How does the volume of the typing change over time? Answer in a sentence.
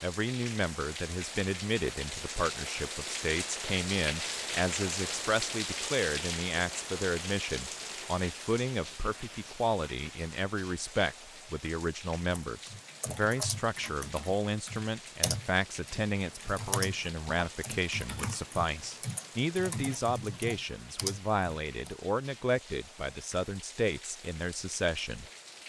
The loudness of the typing stays about the same.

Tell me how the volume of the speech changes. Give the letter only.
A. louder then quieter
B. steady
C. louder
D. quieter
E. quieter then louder
B.